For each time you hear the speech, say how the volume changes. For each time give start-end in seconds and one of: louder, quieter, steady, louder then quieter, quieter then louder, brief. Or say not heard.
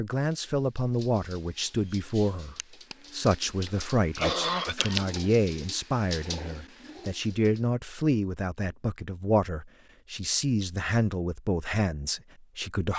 0.0-12.9 steady.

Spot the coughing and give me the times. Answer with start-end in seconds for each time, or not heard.
3.7-5.0.